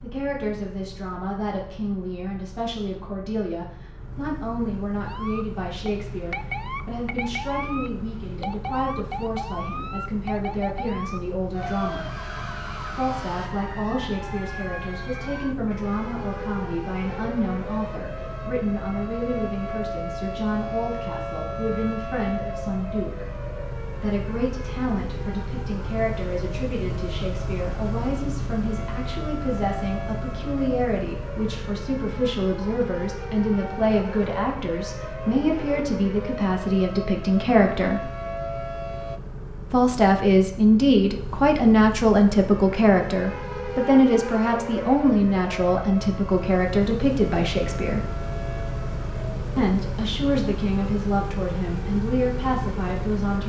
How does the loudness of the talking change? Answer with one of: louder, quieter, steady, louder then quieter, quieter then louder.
louder.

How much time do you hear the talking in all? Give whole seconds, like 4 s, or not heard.
49 s.